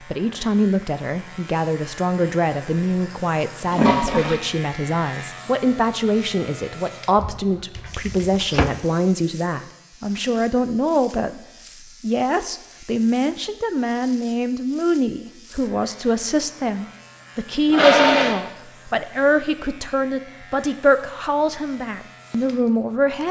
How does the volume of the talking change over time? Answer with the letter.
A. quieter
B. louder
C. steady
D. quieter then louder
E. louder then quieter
C.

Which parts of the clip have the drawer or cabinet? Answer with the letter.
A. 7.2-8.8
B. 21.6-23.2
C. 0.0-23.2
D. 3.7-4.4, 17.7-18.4
A.